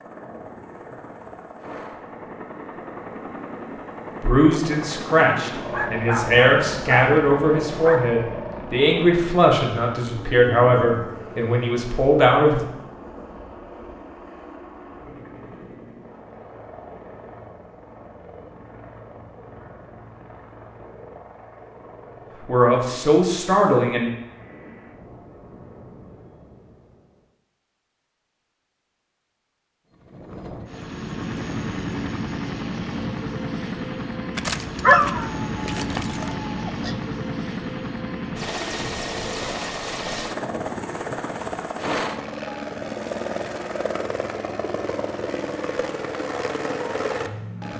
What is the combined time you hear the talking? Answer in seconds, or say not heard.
10 s.